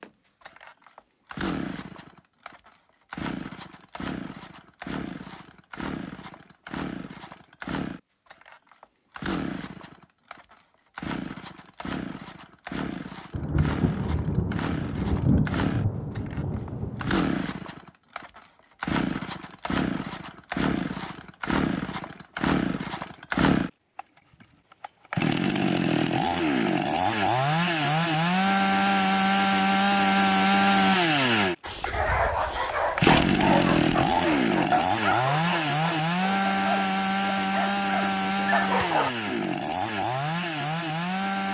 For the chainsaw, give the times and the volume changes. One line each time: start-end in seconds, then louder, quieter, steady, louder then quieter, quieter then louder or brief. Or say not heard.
0.0-41.4 louder.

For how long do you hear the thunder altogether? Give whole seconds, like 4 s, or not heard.
4 s.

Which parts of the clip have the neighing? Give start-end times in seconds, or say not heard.
not heard.